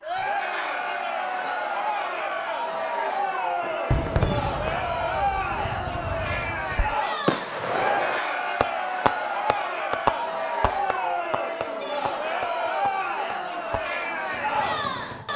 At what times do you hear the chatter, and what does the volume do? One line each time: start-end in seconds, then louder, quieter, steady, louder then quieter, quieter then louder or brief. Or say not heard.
0.0-15.3 steady.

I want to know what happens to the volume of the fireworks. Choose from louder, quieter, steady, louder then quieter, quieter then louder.
louder then quieter.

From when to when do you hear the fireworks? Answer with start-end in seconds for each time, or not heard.
3.6-15.2.